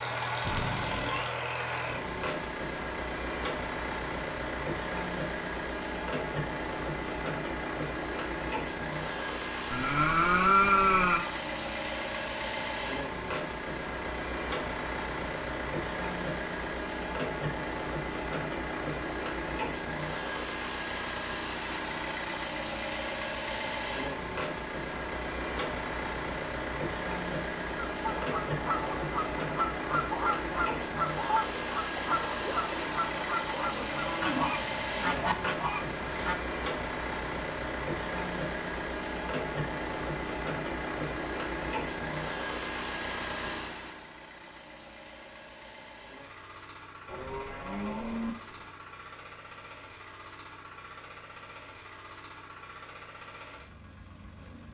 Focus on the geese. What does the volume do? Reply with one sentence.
The volume of the geese stays about the same.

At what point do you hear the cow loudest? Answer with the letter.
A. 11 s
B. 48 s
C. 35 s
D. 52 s
A.